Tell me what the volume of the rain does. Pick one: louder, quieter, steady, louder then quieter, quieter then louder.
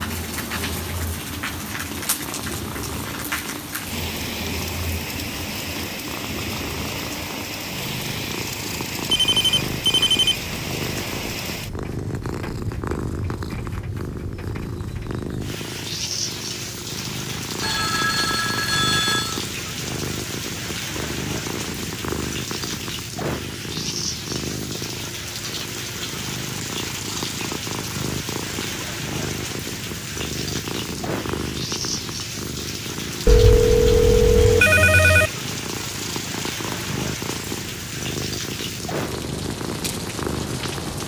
steady.